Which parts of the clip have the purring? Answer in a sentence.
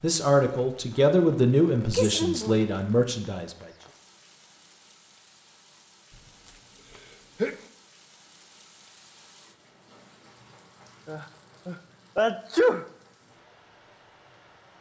You can't hear the purring here.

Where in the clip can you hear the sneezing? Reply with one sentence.
The sneezing can be heard from 1.9 to 2.5 s, from 6.5 to 7.5 s and from 11.1 to 12.8 s.